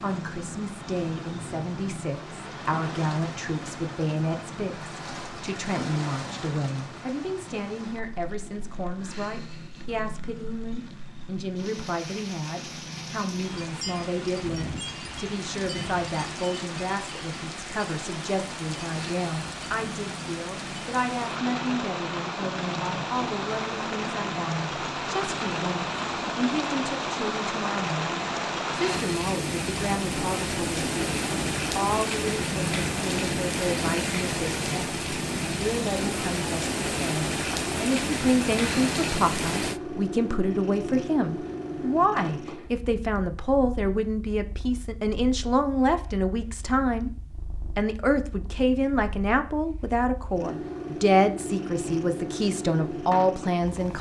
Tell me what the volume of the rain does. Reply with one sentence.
The loudness of the rain goes up.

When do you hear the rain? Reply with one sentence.
The rain can be heard from 0.0 to 39.8 s.